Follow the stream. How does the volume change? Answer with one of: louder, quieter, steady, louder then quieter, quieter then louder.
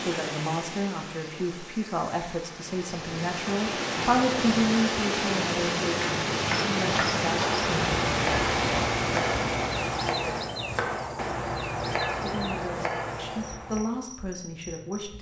louder.